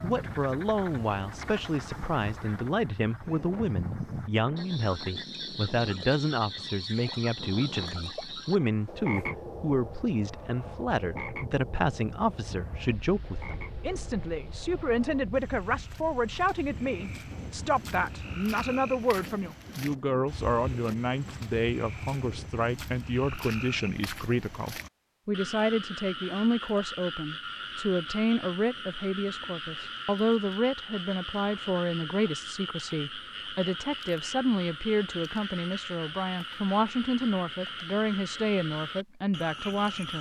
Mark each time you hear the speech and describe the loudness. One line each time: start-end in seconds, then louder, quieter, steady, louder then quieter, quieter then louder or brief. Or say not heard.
0.0-40.1 steady.